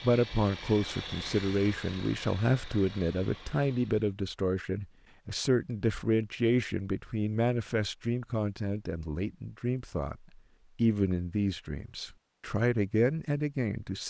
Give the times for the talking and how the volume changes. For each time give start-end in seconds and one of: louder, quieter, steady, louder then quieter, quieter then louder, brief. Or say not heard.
0.0-14.0 steady.